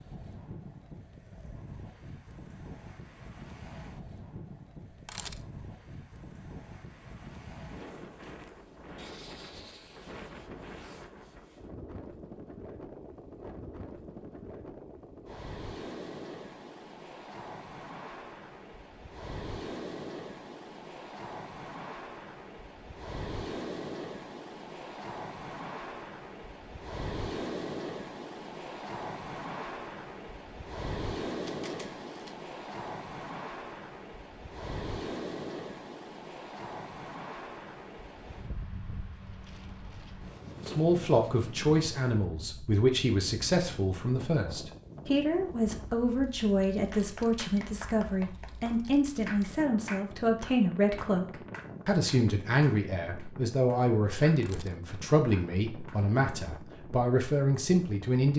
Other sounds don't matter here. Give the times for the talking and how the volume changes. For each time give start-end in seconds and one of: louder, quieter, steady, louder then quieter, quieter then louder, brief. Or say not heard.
40.6-58.3 steady.